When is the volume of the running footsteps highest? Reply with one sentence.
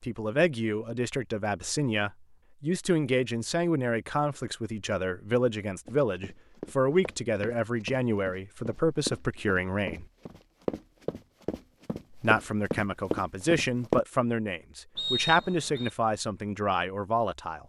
The volume of the running footsteps peaks at 14 seconds.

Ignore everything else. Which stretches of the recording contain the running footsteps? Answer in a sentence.
You can hear the running footsteps from 5.8 to 14.0 s.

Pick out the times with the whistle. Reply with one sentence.
You can hear the whistle from 14.9 to 15.9 s.